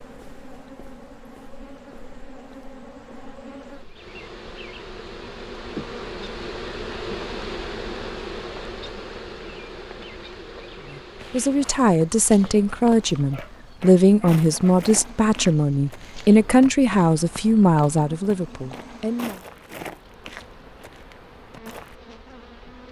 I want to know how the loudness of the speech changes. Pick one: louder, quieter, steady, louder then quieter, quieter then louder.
steady.